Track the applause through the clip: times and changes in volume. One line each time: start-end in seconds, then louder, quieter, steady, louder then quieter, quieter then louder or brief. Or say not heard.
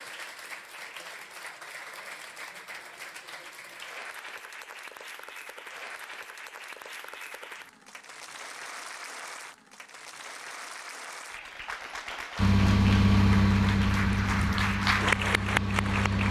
0.0-16.2 louder.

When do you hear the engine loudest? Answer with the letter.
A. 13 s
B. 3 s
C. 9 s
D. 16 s
A.